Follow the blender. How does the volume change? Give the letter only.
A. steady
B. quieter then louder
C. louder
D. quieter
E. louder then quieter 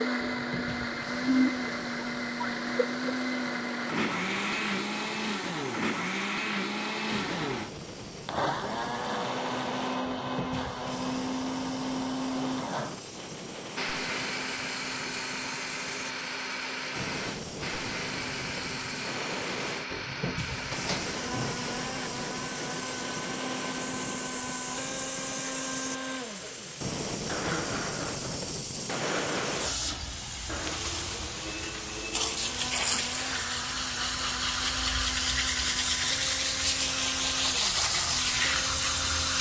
D.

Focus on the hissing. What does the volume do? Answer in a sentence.
The loudness of the hissing goes up.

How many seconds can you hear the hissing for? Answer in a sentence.
The hissing can be heard for 39 seconds in total.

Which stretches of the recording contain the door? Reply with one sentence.
You can hear the door from 20.6 to 21.7 s.